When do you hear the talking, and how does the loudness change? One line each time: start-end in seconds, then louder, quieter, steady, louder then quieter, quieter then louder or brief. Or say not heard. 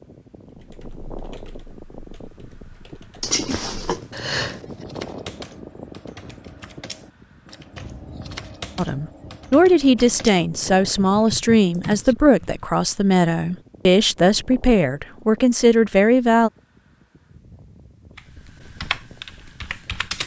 8.8-16.5 steady.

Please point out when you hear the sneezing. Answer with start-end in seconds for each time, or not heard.
3.2-4.8.